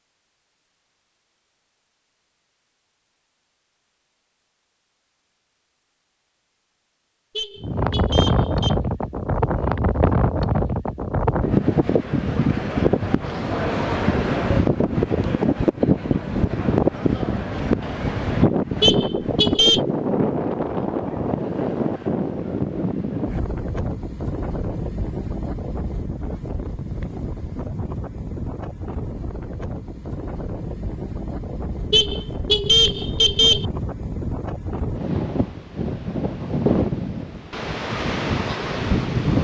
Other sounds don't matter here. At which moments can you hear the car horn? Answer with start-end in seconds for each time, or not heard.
7.3-8.8, 18.8-19.8, 31.9-33.6.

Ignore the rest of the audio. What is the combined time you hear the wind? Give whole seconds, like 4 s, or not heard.
32 s.